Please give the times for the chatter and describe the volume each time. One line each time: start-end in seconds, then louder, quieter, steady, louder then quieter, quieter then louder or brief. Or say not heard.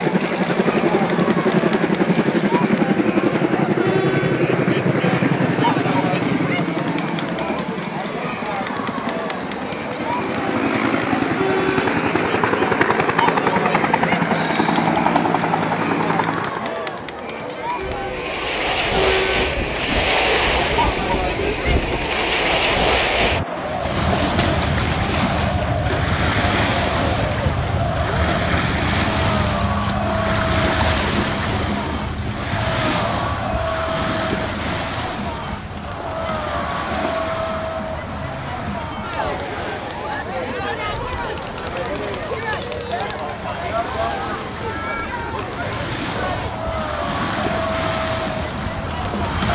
0.0-49.4 steady.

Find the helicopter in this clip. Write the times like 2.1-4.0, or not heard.
0.0-16.7.